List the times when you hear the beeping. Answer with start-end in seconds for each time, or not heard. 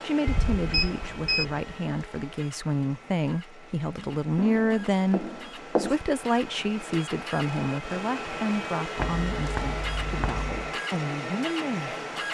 0.7-1.4.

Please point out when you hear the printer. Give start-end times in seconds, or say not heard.
0.0-12.3.